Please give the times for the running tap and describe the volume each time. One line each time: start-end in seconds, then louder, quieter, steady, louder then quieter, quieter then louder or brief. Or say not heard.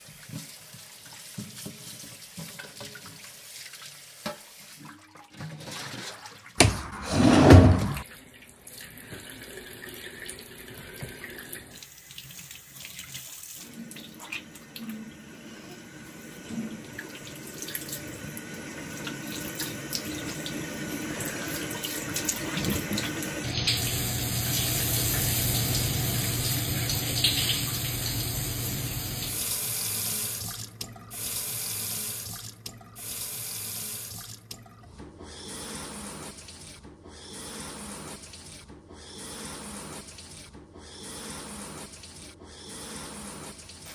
0.0-43.9 louder then quieter.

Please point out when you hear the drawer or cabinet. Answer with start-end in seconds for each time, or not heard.
6.6-8.0.